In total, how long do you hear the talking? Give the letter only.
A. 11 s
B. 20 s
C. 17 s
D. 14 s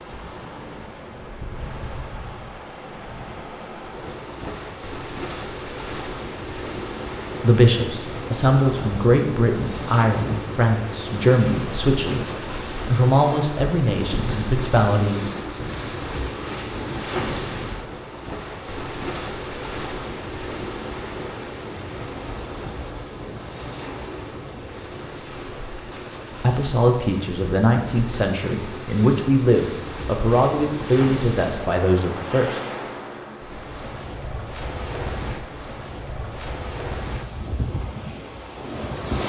D.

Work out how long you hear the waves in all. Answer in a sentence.
The waves can be heard for 39 seconds in total.